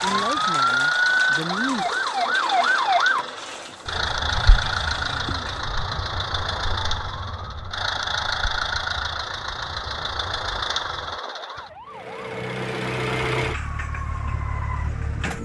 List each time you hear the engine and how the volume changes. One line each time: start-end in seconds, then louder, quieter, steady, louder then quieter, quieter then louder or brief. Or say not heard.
0.0-15.4 steady.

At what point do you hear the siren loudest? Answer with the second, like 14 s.
3 s.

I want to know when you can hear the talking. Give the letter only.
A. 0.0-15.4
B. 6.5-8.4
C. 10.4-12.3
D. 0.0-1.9
D.